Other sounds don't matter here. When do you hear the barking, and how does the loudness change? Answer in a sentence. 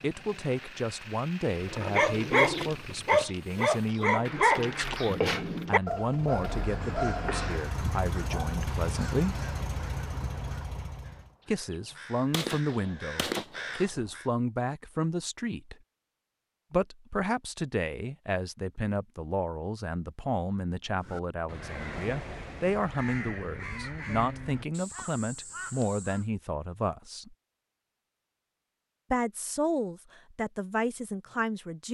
You can hear the barking from 1.5 to 8.6 s, getting quieter.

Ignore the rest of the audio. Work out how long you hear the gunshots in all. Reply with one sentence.
The gunshots can be heard for 2 seconds in total.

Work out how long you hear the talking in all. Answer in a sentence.
The talking can be heard for 27 seconds in total.